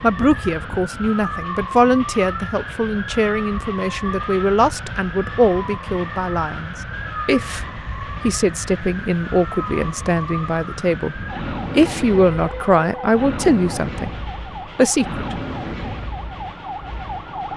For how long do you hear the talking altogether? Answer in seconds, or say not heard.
14 s.